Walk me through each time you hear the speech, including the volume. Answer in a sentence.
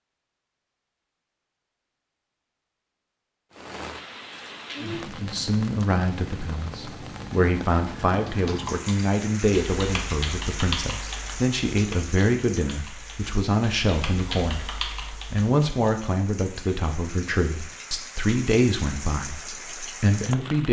You can hear the speech from 4.8 to 20.6 s, at a steady volume.